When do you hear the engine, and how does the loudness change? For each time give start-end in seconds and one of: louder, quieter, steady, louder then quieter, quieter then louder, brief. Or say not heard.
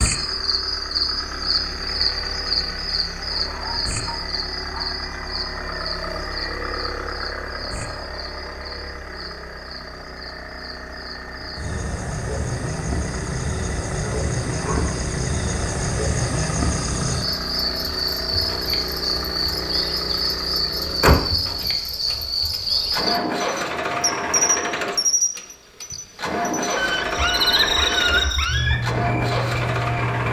0.0-30.2 louder.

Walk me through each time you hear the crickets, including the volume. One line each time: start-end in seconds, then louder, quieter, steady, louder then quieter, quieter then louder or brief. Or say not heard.
0.0-30.2 quieter then louder.